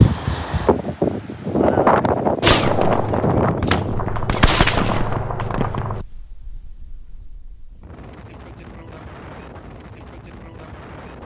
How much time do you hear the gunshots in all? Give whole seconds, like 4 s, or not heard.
4 s.